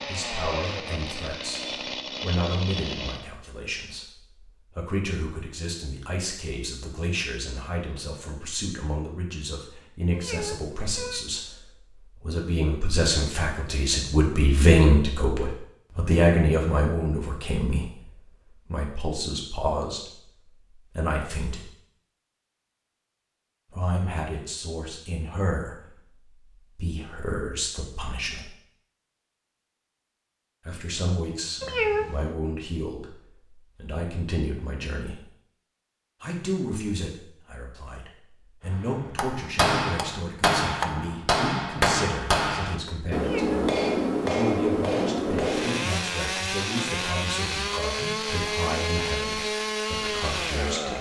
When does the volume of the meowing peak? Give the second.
32 s.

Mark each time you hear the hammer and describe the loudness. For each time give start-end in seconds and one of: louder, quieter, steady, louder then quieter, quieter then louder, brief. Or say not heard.
38.8-46.0 steady.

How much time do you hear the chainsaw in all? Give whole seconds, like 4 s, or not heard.
9 s.